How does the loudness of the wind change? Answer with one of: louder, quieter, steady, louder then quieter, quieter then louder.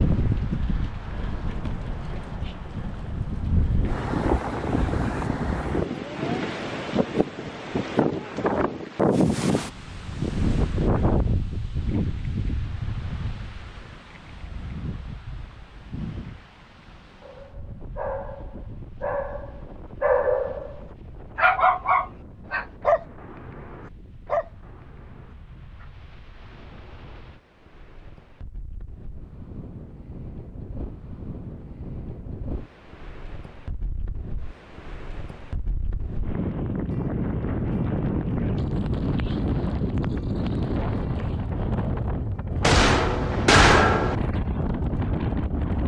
quieter then louder.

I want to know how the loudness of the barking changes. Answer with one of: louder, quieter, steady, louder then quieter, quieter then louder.
louder then quieter.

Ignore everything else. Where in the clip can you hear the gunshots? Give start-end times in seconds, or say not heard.
42.6-44.1.